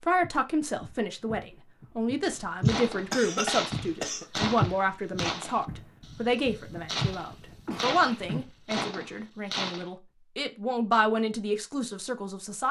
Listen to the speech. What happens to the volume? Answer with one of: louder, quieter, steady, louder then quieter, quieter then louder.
steady.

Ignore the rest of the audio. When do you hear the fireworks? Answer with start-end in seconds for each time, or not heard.
2.2-9.9.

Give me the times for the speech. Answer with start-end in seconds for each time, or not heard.
0.0-12.6.